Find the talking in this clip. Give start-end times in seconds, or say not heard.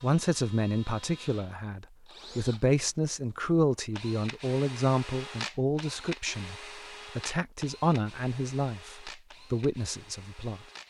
0.0-6.5, 7.2-10.6.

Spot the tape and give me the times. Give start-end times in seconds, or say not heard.
not heard.